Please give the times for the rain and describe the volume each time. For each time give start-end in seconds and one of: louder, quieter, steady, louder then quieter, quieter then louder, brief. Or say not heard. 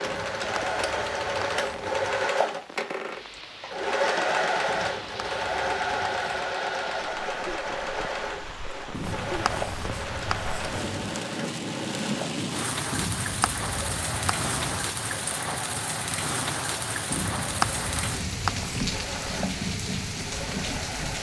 0.0-21.1 louder.